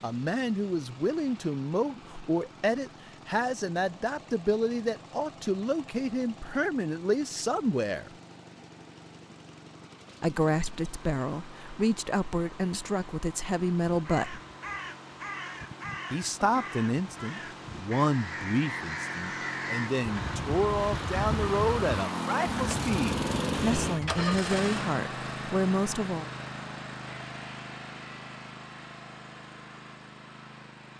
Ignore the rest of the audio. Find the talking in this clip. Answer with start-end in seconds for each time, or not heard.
0.0-8.1, 10.2-14.4, 16.1-26.3.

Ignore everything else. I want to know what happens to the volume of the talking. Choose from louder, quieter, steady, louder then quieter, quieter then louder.
steady.